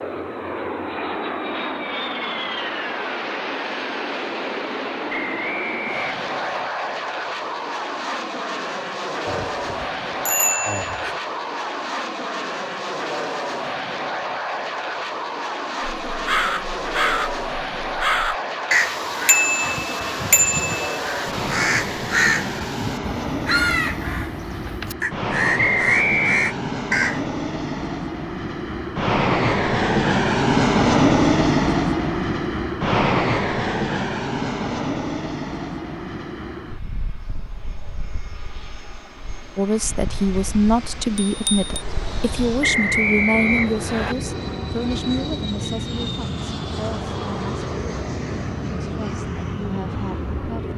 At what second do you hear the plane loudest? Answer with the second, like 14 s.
31 s.